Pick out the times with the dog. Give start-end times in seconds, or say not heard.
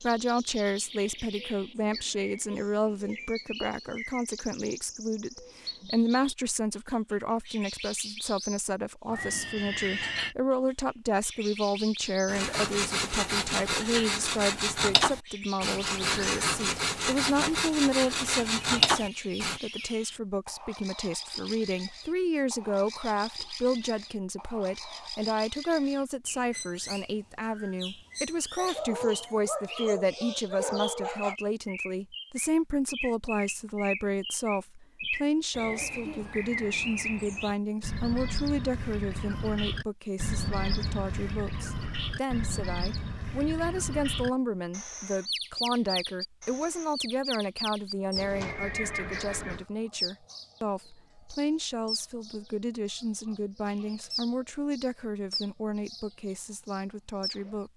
28.6-31.4.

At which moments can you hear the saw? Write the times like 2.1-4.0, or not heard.
12.2-19.6.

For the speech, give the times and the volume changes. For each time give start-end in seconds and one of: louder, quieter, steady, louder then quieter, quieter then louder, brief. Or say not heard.
0.0-57.7 steady.